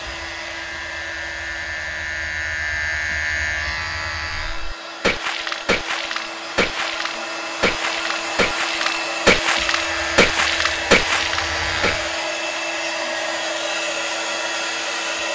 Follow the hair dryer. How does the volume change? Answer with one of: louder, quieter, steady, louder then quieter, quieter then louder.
louder.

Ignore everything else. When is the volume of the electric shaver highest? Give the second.
3 s.